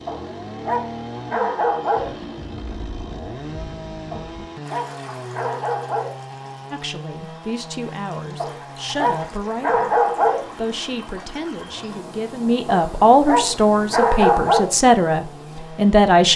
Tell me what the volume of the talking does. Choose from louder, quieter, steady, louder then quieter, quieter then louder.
louder.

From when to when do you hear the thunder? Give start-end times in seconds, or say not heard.
1.9-4.5.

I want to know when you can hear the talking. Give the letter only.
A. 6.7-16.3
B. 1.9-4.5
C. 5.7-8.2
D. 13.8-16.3
A.